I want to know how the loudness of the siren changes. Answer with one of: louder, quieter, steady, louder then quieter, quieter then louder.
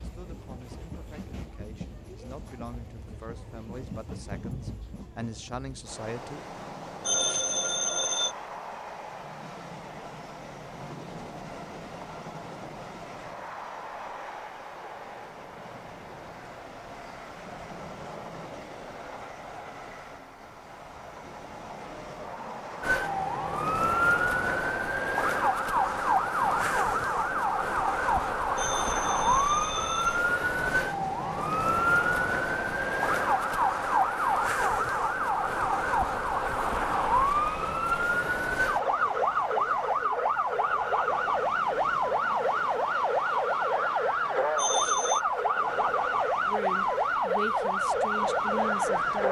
steady.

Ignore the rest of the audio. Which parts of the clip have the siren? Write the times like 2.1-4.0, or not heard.
22.8-49.2.